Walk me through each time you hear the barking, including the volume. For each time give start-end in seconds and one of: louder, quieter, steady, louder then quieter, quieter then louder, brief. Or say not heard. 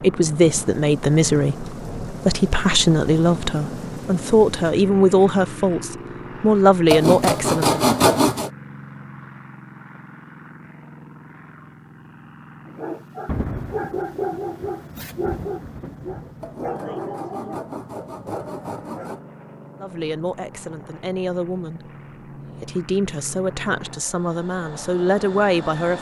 12.7-19.1 quieter.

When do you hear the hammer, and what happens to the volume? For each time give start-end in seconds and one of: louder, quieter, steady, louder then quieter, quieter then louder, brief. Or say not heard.
not heard.